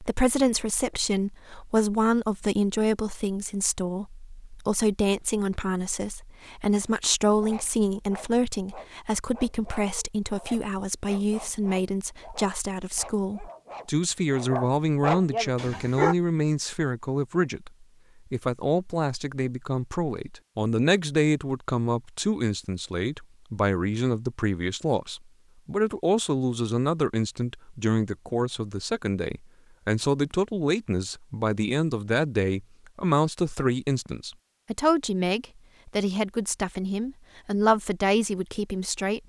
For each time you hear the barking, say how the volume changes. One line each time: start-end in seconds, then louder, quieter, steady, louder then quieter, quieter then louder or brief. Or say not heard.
7.4-16.1 louder.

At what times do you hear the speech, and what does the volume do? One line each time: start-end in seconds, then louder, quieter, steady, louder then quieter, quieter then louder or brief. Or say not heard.
0.0-39.2 steady.